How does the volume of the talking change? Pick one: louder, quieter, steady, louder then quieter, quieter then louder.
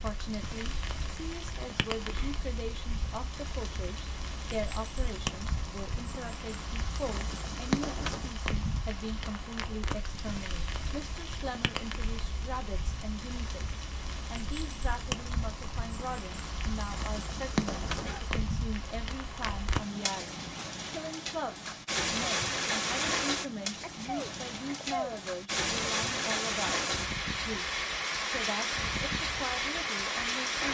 steady.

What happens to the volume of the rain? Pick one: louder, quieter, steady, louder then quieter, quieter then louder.
louder.